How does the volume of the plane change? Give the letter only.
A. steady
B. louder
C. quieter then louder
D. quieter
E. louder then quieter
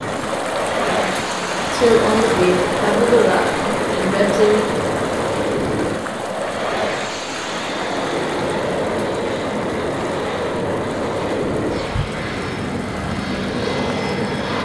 A.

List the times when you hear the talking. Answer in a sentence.
You can hear the talking from 1.7 to 4.7 s.